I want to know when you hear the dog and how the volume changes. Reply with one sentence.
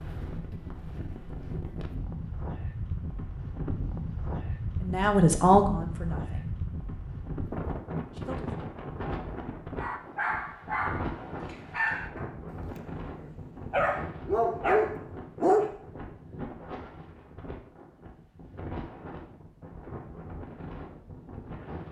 You can hear the dog from 9.8 to 15.8 s, getting quieter then louder.